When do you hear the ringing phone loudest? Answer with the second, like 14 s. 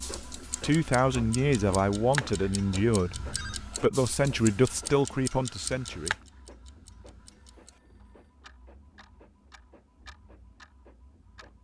3 s.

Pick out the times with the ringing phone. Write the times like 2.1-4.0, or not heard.
3.0-3.6, 7.2-8.3.